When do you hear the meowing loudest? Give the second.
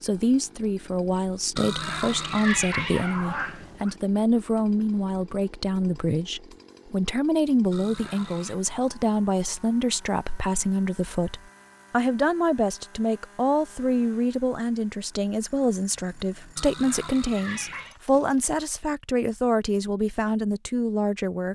3 s.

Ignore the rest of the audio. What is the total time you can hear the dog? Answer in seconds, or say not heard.
not heard.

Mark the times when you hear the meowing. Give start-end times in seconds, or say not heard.
1.6-4.0, 7.7-8.6, 16.6-18.0.